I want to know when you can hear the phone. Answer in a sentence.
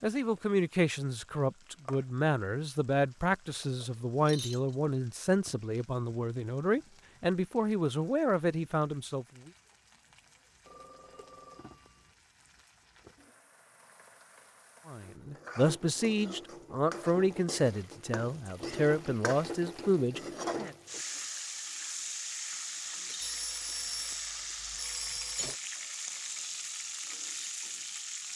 The phone can be heard from 10.7 to 12.2 s and from 23.2 to 25.6 s.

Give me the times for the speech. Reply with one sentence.
The speech can be heard from 0.0 to 9.5 s and from 14.8 to 20.8 s.